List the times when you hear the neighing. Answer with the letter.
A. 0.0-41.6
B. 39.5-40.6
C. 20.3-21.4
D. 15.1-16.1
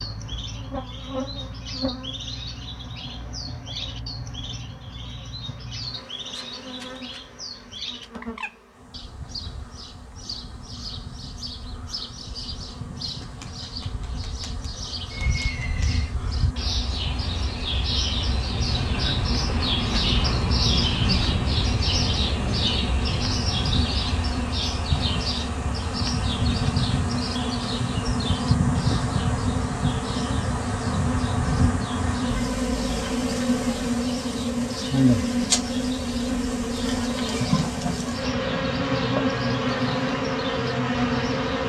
D.